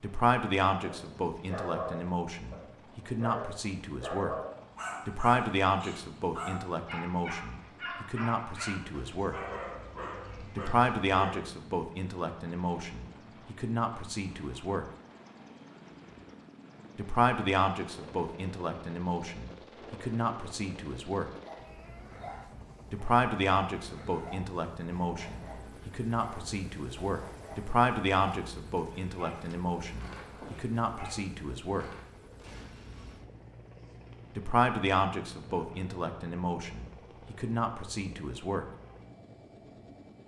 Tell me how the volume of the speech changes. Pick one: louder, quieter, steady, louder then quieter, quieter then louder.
steady.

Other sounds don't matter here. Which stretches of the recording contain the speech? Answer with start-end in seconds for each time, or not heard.
0.0-4.3, 5.0-9.3, 10.6-14.8, 16.9-21.3, 22.9-31.9, 34.4-38.6.